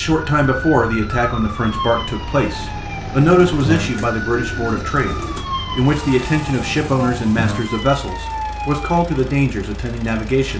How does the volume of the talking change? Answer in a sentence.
The loudness of the talking stays about the same.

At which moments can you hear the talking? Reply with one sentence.
You can hear the talking from 0.0 to 5.2 s and from 5.8 to 10.5 s.